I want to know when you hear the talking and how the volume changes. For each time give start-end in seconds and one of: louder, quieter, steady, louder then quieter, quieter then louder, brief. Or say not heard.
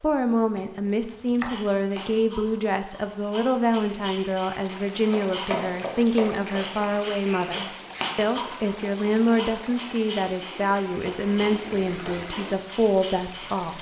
0.0-13.7 steady.